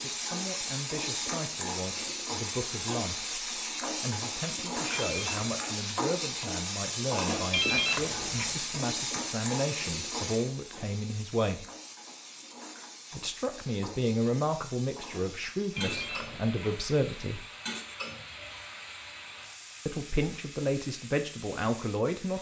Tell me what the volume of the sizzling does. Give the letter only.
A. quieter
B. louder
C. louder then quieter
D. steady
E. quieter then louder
A.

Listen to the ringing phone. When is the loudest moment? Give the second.
8 s.